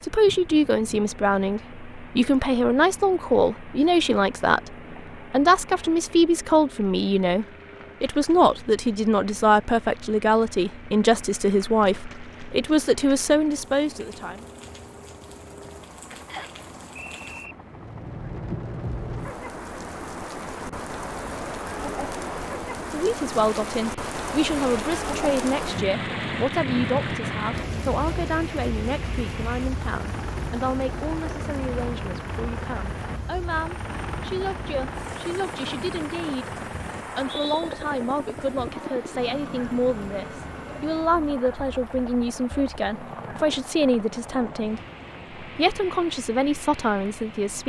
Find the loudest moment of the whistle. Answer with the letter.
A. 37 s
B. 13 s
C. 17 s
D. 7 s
A.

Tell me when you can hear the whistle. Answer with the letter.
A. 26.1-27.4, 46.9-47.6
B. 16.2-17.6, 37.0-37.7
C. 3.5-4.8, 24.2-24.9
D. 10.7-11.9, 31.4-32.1
B.